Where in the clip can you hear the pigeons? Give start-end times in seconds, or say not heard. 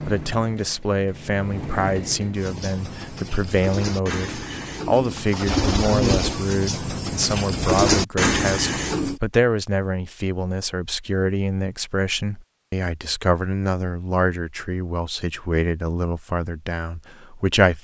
2.4-9.2.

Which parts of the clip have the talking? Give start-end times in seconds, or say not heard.
0.1-17.7.